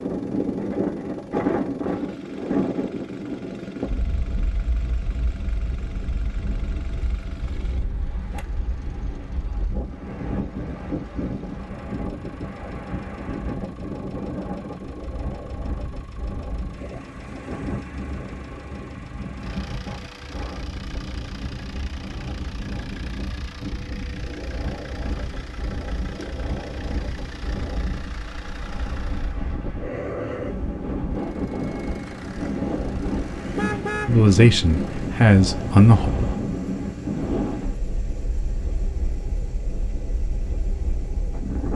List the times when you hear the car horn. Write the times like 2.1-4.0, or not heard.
33.5-34.2.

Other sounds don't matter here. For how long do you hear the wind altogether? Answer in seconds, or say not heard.
42 s.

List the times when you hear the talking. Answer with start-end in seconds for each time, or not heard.
34.0-36.1.